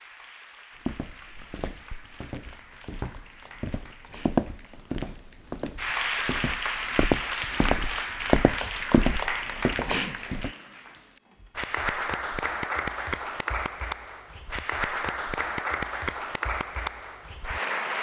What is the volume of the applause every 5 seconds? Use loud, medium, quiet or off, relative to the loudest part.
quiet, loud, loud, loud.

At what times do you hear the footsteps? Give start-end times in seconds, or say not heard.
0.8-10.5.